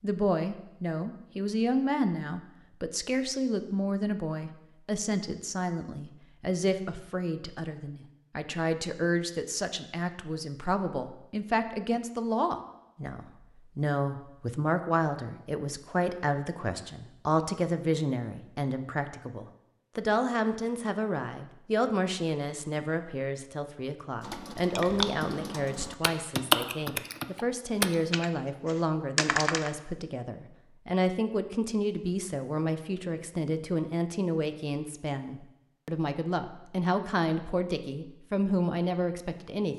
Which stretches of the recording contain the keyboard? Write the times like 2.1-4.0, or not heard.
24.2-29.7.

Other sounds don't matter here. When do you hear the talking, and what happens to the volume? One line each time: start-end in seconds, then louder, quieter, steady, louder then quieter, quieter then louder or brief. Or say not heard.
0.0-39.7 steady.